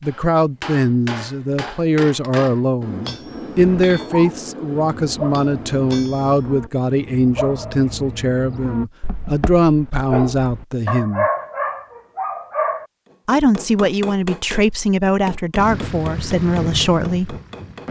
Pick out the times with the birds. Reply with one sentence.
You can't hear the birds here.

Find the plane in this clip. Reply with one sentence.
The plane can be heard from 15.6 to 17.8 s.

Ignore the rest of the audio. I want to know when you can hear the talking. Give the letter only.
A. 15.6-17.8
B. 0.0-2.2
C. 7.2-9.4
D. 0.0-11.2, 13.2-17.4
D.